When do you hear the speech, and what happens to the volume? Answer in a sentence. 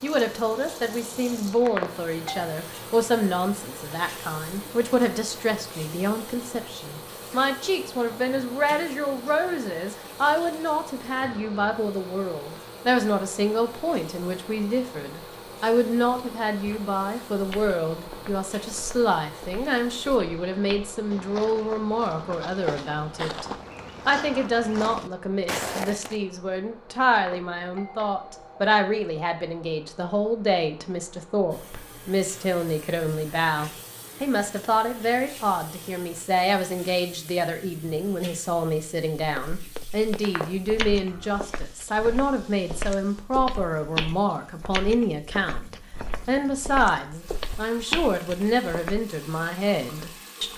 The speech can be heard from 0.0 to 50.5 s, at a steady volume.